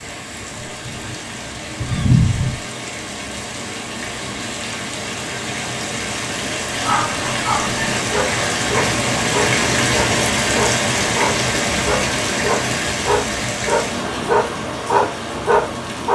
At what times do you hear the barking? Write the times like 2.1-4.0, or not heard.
6.7-16.0.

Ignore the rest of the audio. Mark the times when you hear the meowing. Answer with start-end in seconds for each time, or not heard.
0.7-2.6.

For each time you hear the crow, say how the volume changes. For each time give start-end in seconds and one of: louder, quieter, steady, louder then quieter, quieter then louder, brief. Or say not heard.
not heard.